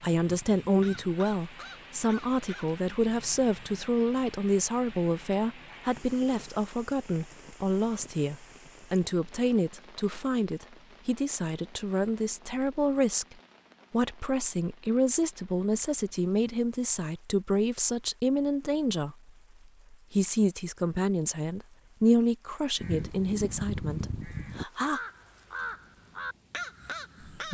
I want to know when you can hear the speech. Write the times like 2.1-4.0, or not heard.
0.0-19.1, 19.9-25.0.